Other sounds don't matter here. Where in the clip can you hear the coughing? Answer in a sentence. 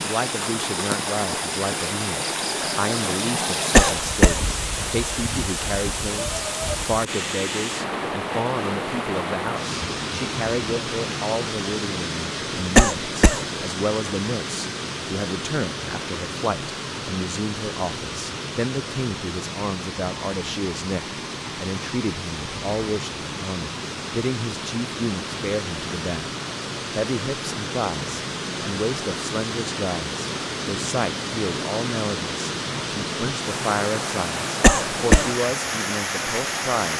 The coughing can be heard from 3.8 to 4.4 s, from 12.8 to 13.4 s and from 34.6 to 35.3 s.